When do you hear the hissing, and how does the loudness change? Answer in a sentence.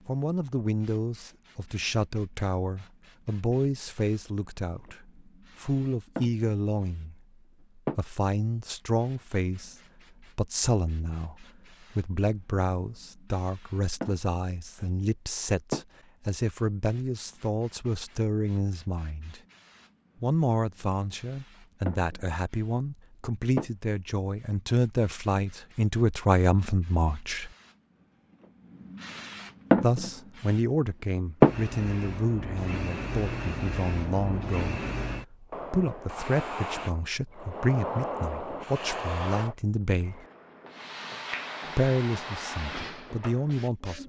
The hissing can be heard from 0.0 to 44.0 s, getting louder then quieter.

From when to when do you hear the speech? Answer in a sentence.
You can hear the speech from 0.1 to 19.4 s, from 20.2 to 27.5 s, from 29.8 to 40.2 s and from 41.8 to 44.0 s.